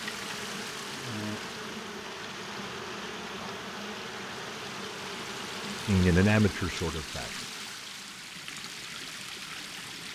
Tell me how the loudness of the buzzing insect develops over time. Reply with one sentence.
The loudness of the buzzing insect goes down.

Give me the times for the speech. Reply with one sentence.
The speech can be heard from 5.8 to 7.5 s.